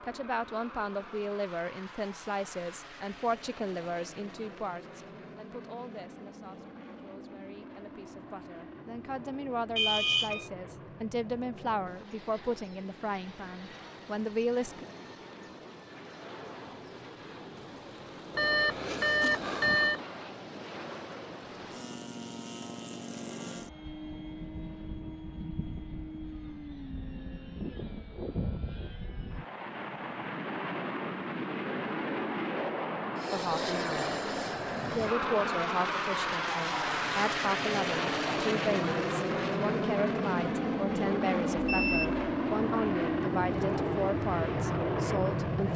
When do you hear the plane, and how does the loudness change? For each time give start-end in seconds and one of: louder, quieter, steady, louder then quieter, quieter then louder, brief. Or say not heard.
0.0-45.7 louder.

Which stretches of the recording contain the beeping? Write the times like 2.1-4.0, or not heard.
9.8-10.4, 18.4-20.0, 41.5-42.2.